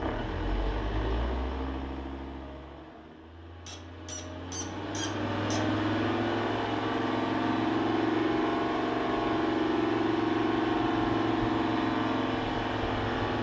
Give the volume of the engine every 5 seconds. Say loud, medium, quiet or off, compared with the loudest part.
medium, loud, loud.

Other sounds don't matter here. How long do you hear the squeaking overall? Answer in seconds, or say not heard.
2 s.